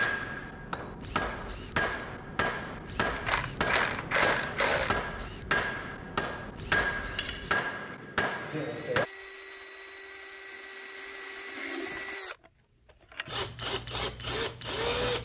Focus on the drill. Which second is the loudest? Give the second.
15 s.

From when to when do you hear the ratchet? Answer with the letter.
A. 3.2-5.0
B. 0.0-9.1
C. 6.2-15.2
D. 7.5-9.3
A.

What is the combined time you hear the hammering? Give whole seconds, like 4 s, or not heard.
9 s.